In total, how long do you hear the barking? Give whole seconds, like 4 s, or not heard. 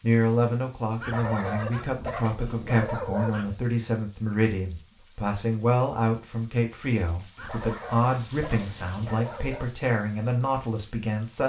5 s.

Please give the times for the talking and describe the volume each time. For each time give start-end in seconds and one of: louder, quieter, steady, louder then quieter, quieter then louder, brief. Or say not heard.
0.0-11.4 steady.